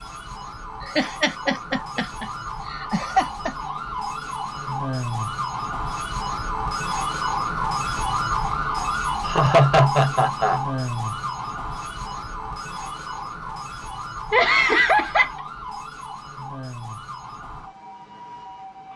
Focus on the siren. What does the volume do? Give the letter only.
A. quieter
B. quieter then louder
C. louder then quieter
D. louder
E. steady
C.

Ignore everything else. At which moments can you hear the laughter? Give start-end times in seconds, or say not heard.
0.8-3.5, 9.2-10.6, 14.3-15.3.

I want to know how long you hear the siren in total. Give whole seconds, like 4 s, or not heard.
19 s.